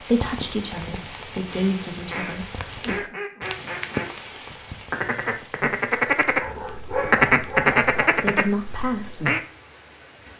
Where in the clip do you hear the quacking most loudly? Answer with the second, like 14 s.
7 s.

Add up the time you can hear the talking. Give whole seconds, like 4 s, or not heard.
4 s.